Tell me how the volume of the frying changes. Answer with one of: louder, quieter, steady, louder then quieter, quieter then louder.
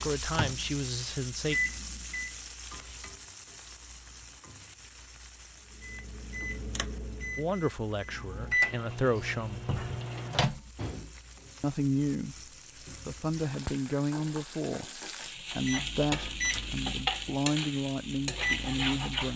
quieter then louder.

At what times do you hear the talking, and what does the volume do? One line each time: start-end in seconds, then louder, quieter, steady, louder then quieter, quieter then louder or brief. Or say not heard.
0.1-1.6 brief
7.3-9.7 brief
11.6-12.3 brief
13.1-19.3 steady.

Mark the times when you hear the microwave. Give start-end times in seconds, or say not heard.
0.0-2.4, 5.8-11.1, 15.6-19.3.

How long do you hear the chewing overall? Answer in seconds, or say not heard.
not heard.